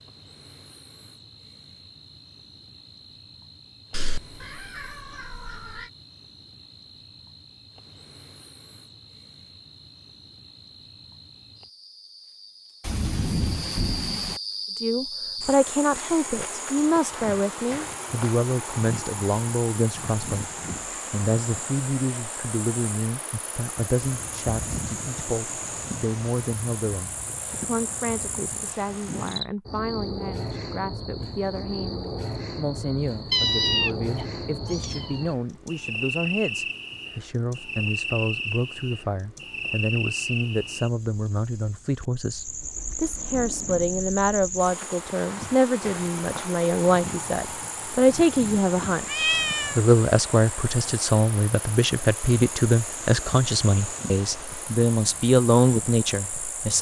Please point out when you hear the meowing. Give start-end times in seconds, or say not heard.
3.9-5.9, 33.3-35.2, 49.0-49.8.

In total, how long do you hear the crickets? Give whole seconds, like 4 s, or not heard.
57 s.